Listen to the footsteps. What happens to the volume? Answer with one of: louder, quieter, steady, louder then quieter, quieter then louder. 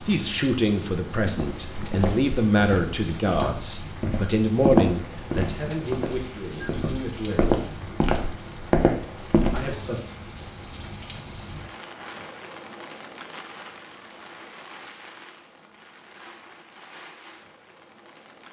louder.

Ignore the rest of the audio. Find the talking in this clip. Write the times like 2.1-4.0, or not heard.
0.0-7.5, 9.5-9.9.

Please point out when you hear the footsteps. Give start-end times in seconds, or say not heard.
1.2-9.8.